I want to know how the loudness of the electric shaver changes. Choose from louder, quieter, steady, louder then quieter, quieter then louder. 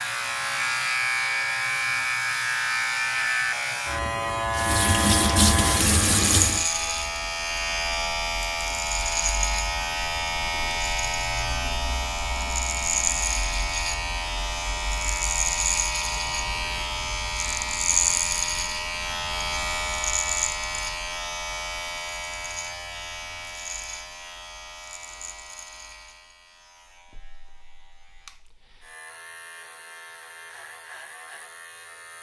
quieter.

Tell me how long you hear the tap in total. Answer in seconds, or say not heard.
2 s.